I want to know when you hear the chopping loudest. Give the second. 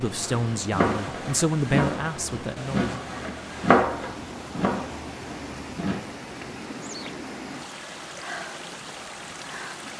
4 s.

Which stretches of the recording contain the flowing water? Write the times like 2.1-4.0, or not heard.
0.0-9.9.